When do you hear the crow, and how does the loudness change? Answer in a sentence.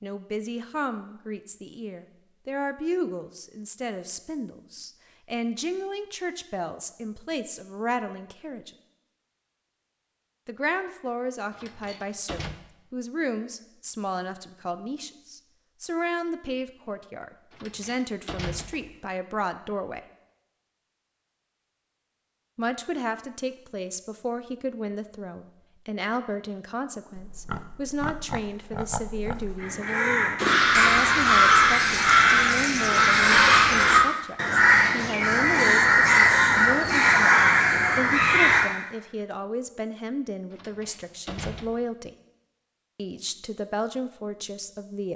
You can hear the crow from 29.6 to 38.6 s, at a steady volume.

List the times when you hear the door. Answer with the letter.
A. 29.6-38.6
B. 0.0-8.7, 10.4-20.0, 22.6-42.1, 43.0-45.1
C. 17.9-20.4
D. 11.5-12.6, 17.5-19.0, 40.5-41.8
D.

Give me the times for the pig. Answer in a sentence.
You can hear the pig from 27.1 to 29.6 s.